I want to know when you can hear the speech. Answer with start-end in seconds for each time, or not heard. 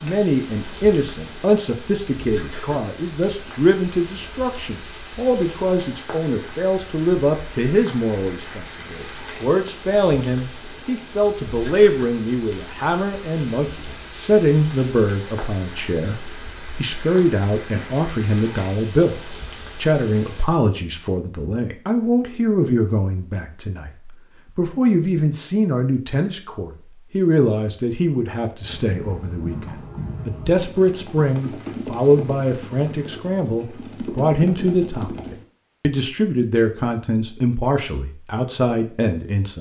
0.0-39.5.